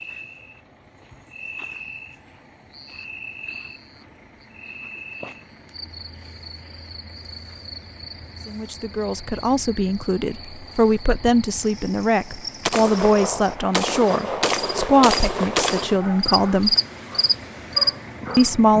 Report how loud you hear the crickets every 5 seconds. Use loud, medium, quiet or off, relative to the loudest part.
quiet, quiet, quiet, loud.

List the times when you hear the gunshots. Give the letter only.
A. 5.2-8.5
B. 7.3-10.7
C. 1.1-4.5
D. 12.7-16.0
D.